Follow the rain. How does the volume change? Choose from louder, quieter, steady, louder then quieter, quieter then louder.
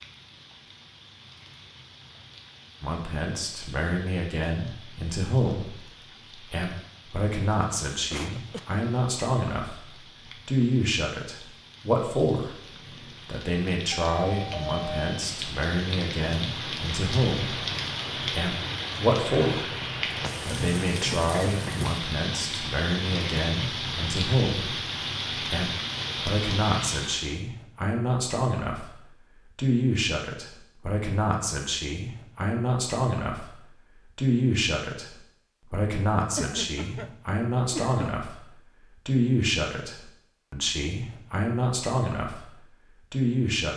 louder.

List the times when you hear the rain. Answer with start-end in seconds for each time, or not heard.
0.0-27.4.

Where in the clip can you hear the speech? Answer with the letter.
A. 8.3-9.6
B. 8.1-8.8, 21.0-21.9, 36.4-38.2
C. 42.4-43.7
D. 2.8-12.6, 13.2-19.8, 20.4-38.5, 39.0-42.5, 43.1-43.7
D.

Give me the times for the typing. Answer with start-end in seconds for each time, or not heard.
not heard.